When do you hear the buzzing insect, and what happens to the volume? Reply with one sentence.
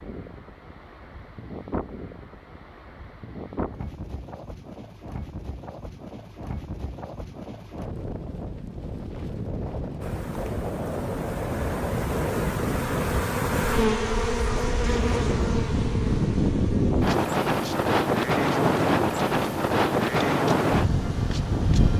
You can hear the buzzing insect from 10.0 to 21.9 s, getting louder then quieter.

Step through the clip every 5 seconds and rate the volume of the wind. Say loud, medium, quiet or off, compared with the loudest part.
quiet, quiet, medium, loud, loud.